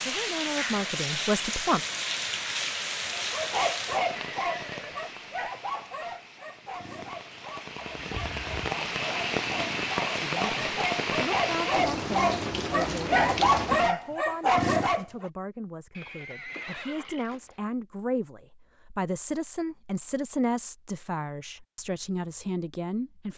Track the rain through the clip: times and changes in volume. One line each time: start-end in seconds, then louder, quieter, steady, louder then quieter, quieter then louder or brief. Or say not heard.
0.0-13.9 quieter then louder.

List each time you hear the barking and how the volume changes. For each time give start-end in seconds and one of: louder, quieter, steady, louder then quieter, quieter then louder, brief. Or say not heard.
3.1-15.2 quieter then louder.